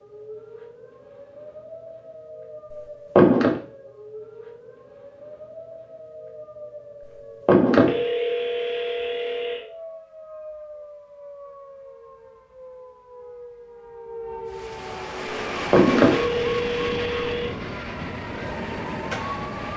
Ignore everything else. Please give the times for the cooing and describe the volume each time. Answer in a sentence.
The cooing can't be heard in this clip.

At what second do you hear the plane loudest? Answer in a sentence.
The volume of the plane peaks at 16 seconds.